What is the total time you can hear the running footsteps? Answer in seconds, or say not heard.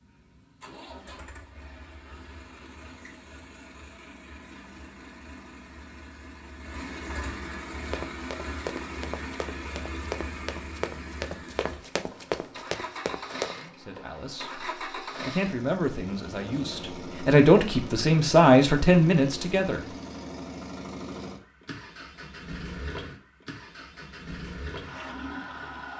6 s.